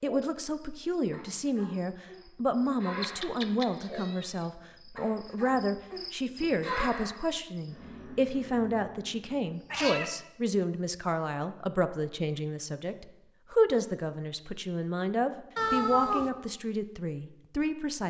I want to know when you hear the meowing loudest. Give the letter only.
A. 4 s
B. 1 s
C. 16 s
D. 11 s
C.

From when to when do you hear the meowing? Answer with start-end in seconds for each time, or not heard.
3.0-4.3, 9.7-10.1, 15.6-16.3.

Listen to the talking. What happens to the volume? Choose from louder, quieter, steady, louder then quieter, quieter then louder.
steady.